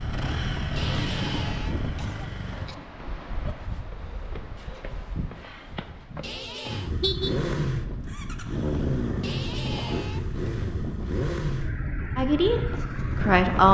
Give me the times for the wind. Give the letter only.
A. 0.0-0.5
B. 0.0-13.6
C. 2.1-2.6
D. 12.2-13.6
B.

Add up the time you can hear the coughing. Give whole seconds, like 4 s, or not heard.
4 s.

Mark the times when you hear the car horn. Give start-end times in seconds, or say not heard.
7.0-7.5.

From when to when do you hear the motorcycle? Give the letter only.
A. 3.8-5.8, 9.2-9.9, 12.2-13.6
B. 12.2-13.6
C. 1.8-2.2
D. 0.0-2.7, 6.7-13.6
D.